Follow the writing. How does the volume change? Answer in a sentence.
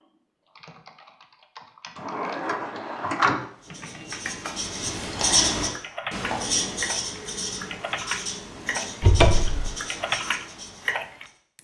The loudness of the writing goes down.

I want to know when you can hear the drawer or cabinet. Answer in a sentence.
You can hear the drawer or cabinet from 1.9 to 3.4 s and from 9.0 to 9.7 s.